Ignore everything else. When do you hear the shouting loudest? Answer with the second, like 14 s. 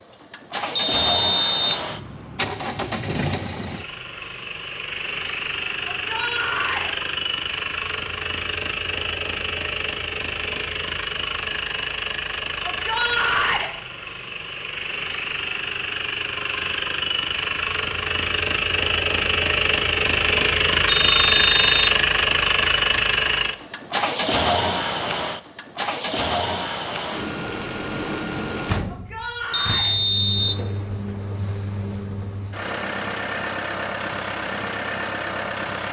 13 s.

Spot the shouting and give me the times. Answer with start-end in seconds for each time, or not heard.
5.8-6.9, 12.6-13.7, 28.9-29.9.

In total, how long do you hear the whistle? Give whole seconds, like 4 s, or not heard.
3 s.